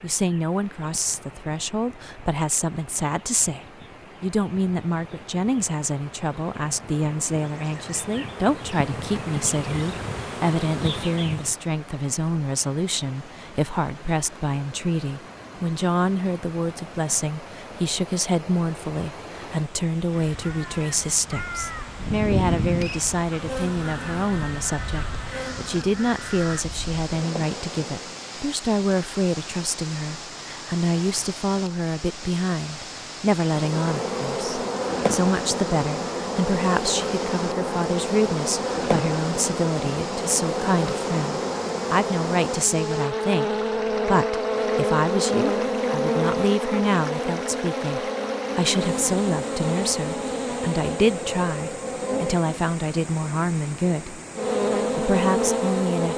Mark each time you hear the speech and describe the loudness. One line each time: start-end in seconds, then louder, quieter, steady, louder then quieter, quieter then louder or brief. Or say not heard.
0.0-56.1 steady.